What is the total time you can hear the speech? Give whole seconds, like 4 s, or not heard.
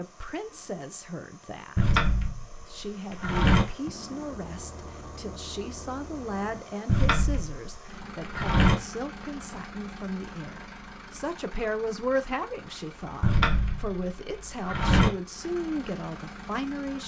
16 s.